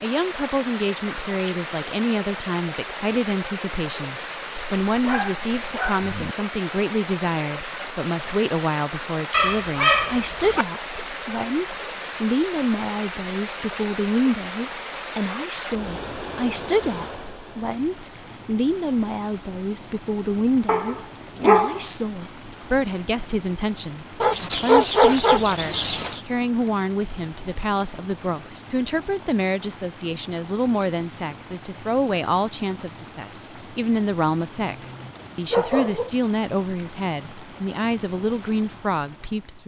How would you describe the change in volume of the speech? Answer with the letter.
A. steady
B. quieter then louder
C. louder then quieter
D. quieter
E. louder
A.